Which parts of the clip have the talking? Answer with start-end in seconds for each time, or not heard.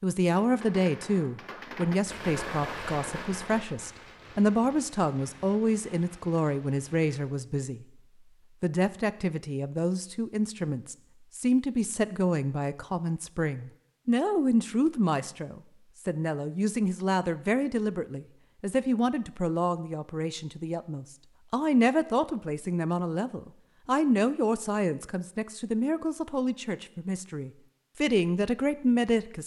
0.0-7.8, 8.6-29.4.